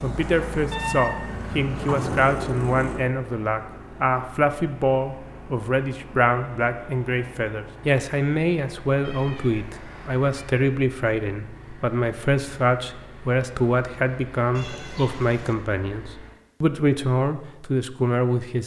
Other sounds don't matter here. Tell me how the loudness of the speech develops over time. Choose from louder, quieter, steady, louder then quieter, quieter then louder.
steady.